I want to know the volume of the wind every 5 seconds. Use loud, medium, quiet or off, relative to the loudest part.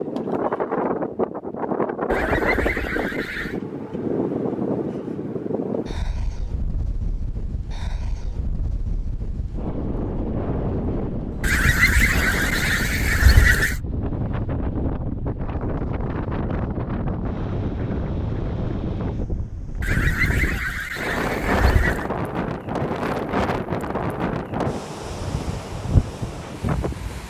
loud, medium, loud, loud, loud, loud.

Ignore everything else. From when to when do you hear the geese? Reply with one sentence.
The geese can be heard from 2.1 to 3.6 s, from 11.4 to 13.8 s and from 19.8 to 22.1 s.